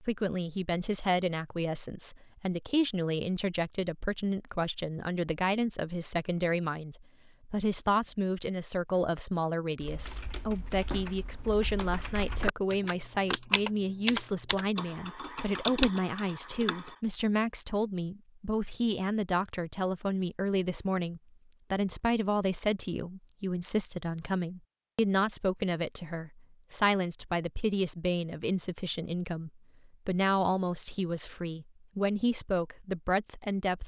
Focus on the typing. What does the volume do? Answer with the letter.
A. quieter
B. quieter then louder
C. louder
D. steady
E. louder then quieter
C.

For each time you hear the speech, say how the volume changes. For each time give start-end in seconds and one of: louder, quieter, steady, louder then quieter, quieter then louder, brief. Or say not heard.
0.0-33.8 steady.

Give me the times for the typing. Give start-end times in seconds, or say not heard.
9.8-16.9.